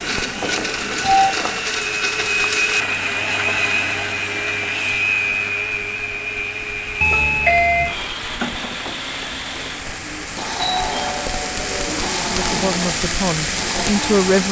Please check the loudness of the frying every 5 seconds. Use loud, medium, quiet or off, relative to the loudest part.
medium, medium, loud.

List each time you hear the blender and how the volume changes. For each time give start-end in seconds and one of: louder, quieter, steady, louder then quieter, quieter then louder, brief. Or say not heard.
0.0-14.3 quieter.